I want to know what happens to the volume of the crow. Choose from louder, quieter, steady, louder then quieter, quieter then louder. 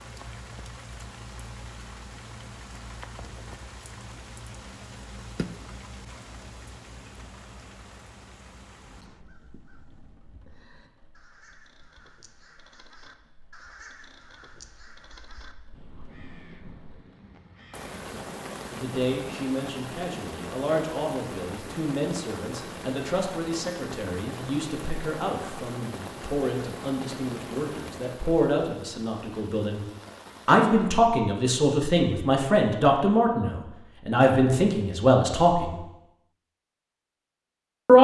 louder.